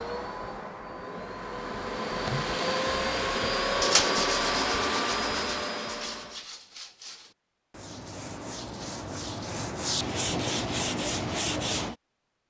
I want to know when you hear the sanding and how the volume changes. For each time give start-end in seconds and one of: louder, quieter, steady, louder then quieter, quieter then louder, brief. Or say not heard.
3.8-11.9 quieter then louder.